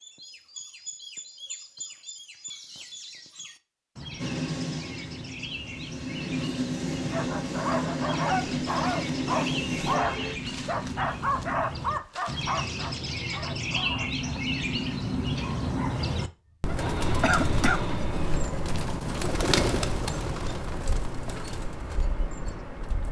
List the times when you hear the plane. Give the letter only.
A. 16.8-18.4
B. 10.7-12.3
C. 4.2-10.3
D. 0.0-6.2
C.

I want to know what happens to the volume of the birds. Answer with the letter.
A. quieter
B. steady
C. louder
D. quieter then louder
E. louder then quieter
C.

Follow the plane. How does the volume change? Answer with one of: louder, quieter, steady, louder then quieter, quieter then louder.
louder.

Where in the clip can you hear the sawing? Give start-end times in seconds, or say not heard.
16.8-18.4.